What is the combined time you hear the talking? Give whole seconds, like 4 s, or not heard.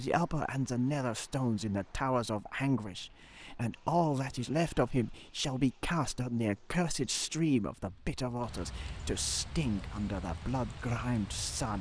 12 s.